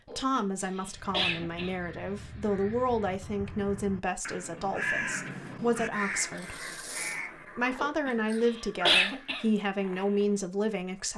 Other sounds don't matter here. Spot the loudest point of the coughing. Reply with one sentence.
The volume of the coughing peaks at 9 seconds.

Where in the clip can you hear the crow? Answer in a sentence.
The crow can be heard from 0.9 to 10.4 s.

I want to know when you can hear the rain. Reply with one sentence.
The rain can't be heard in this clip.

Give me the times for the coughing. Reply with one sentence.
The coughing can be heard from 0.1 to 1.8 s and from 7.8 to 9.4 s.